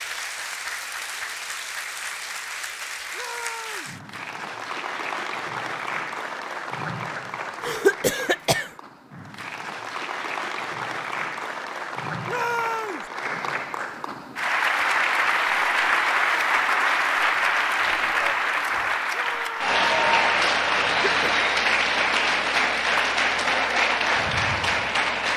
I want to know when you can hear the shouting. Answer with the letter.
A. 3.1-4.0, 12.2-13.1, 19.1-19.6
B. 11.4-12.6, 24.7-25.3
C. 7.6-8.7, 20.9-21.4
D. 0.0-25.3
A.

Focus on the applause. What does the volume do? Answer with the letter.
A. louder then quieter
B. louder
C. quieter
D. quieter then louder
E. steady
B.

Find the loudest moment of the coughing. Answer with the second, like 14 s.
8 s.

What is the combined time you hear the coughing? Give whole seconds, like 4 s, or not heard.
2 s.